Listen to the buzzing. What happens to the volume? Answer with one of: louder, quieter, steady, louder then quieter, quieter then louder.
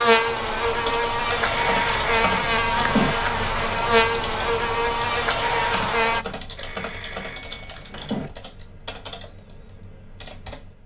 steady.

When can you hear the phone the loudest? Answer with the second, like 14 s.
3 s.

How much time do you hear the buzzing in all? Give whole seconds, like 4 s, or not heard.
6 s.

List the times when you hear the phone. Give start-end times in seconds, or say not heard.
1.4-3.1, 6.5-8.3.